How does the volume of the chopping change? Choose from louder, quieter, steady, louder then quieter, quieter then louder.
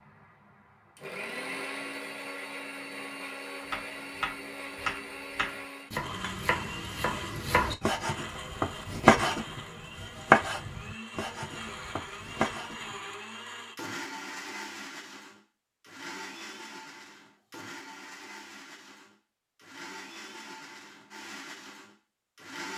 louder then quieter.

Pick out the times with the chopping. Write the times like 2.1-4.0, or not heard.
3.7-12.9.